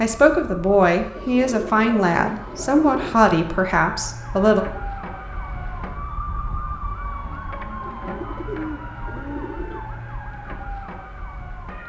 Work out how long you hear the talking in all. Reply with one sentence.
The talking can be heard for 5 seconds in total.